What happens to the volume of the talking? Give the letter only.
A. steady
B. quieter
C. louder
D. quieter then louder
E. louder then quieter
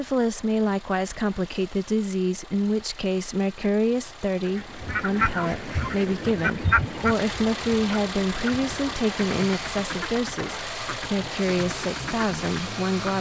A.